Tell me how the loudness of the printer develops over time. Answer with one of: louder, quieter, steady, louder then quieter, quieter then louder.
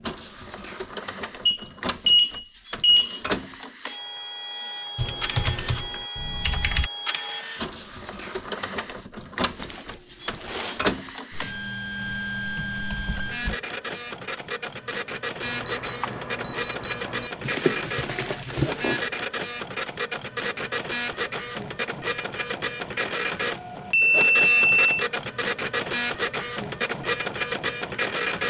louder.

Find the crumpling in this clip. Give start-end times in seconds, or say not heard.
9.6-10.8, 17.4-19.1.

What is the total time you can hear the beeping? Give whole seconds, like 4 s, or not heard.
5 s.